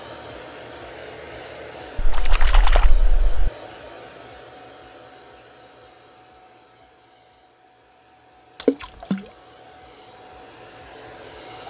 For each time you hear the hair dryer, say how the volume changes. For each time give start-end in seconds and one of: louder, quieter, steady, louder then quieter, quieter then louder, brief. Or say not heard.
0.0-11.6 quieter then louder.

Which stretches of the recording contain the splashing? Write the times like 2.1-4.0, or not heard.
1.9-3.5, 8.6-9.2.